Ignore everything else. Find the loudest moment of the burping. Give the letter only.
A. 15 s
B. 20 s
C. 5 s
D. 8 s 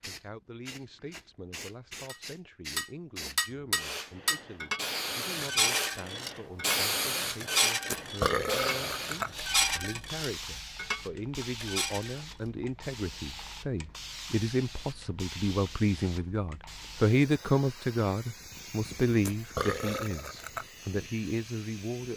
D.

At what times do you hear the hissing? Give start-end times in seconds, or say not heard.
0.0-22.1.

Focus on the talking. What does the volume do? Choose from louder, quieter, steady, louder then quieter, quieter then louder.
louder.